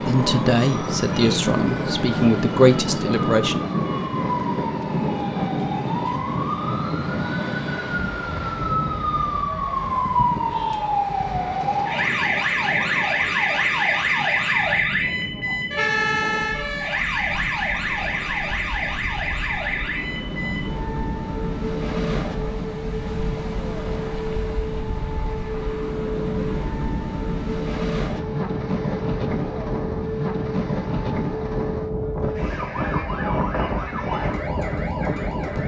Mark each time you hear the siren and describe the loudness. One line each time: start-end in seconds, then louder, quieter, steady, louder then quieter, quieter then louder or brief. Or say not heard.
0.0-35.6 louder then quieter.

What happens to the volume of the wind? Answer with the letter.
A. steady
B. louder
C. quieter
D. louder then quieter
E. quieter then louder
E.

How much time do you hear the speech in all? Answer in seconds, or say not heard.
4 s.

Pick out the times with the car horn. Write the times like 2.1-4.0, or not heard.
not heard.